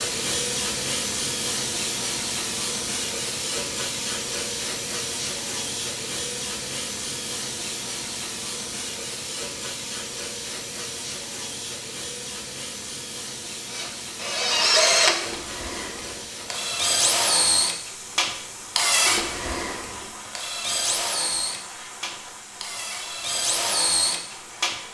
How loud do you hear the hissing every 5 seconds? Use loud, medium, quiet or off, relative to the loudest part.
loud, loud, medium, medium, quiet.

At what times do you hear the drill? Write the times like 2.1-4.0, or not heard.
13.7-24.8.